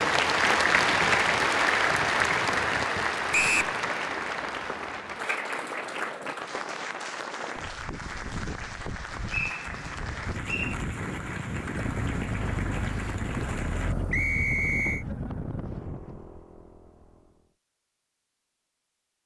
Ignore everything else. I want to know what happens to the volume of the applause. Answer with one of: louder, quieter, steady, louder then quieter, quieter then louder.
quieter.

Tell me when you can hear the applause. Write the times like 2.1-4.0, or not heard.
0.0-13.9.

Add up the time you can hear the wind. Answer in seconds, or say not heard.
16 s.